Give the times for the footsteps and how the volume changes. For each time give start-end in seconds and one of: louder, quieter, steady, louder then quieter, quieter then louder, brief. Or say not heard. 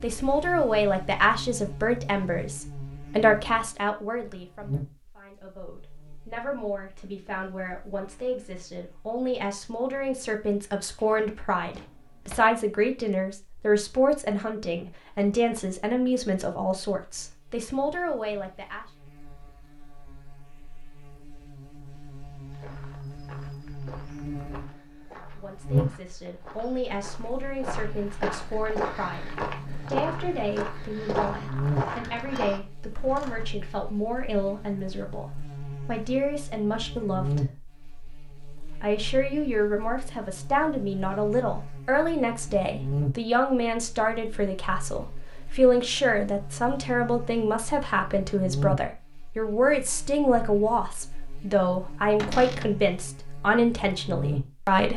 22.5-32.6 louder.